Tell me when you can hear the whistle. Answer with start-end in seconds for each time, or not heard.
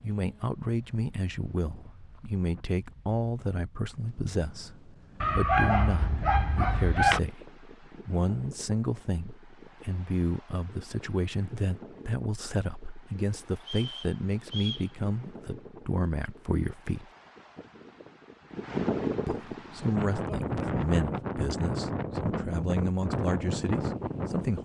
13.6-14.9.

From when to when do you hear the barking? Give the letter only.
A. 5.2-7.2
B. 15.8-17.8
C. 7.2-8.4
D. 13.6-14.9
A.